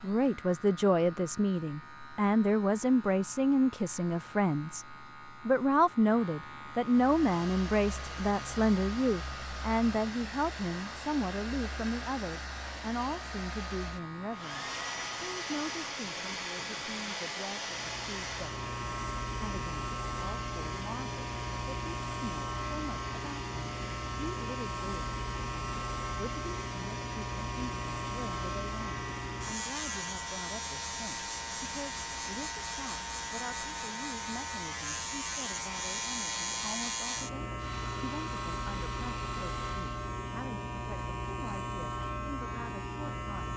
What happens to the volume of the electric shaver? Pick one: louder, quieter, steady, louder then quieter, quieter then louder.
louder.